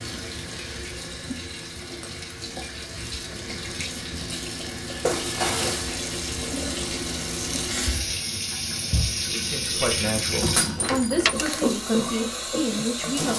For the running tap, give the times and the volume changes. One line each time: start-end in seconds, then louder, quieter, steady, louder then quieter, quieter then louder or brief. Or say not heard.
0.0-13.3 louder.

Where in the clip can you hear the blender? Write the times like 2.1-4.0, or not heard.
not heard.